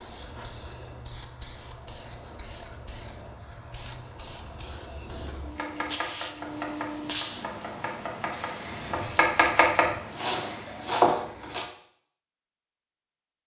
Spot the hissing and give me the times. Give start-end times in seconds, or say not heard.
0.0-11.0.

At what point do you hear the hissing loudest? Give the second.
7 s.